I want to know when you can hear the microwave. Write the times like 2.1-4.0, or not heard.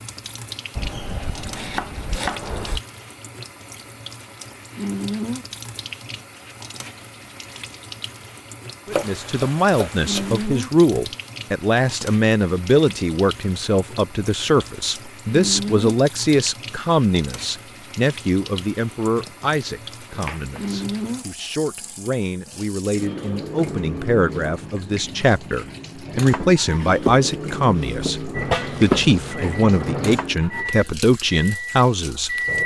28.3-32.6.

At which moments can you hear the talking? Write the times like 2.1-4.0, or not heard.
8.8-32.4.